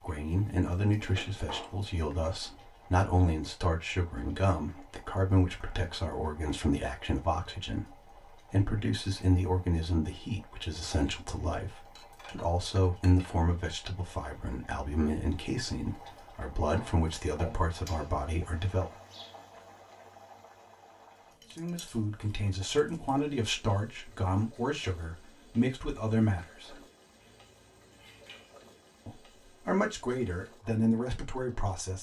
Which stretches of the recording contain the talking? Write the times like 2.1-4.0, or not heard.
0.0-18.9, 21.6-26.8, 29.1-31.9.